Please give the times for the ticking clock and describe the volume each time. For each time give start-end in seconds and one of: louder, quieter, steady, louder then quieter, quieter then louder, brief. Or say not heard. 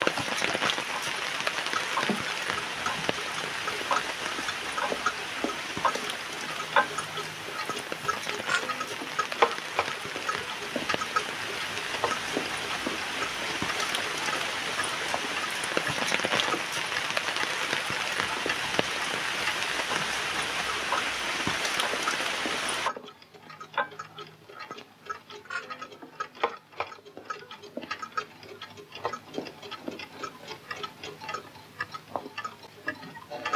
0.0-33.5 quieter.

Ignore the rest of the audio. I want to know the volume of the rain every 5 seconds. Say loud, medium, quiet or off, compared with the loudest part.
loud, medium, loud, loud, loud, off, off.